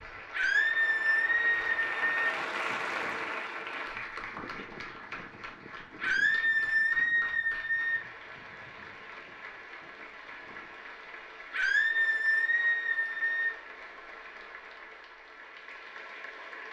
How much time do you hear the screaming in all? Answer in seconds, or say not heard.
6 s.